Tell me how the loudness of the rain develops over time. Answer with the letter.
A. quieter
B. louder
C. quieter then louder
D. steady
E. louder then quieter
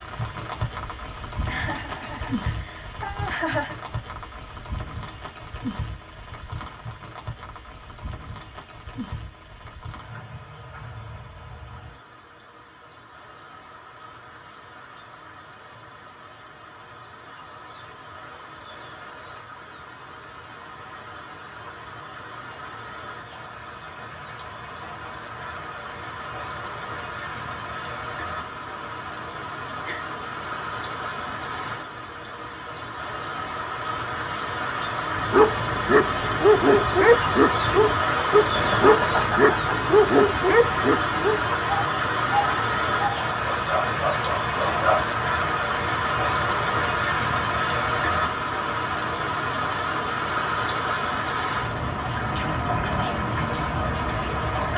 C.